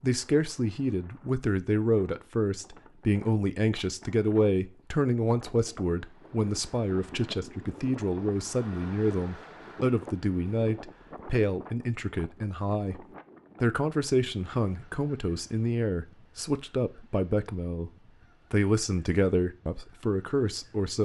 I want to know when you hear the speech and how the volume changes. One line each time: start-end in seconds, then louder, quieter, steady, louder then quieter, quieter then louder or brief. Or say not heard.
0.0-17.9 steady
18.5-21.0 brief.